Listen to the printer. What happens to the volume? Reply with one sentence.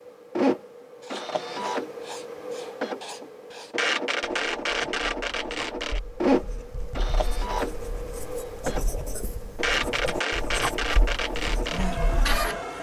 The volume of the printer stays about the same.